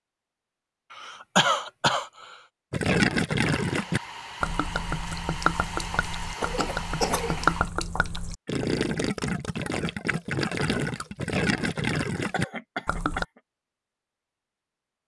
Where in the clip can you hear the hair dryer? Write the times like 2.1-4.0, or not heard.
3.5-7.7.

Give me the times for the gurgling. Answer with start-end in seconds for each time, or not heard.
2.7-13.2.